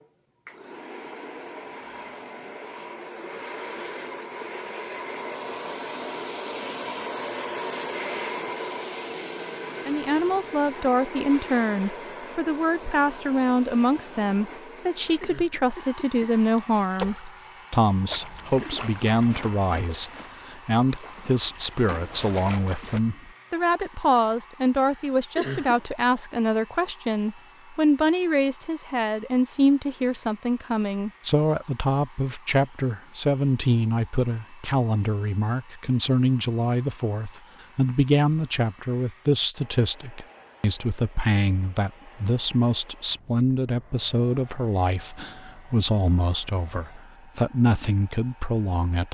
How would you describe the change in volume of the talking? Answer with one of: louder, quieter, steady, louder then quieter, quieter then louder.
steady.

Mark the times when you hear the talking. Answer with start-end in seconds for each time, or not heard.
9.8-49.0.